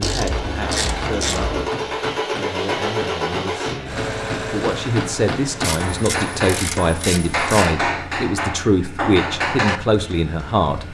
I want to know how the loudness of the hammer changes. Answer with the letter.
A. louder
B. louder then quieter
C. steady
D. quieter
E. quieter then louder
A.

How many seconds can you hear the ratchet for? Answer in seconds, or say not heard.
4 s.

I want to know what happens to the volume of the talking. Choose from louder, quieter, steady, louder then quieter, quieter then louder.
louder.